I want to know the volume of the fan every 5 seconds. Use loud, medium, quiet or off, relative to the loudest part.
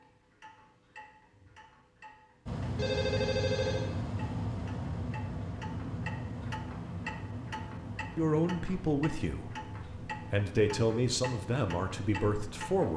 loud, medium, medium.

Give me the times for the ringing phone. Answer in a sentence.
The ringing phone can be heard from 2.8 to 3.9 s.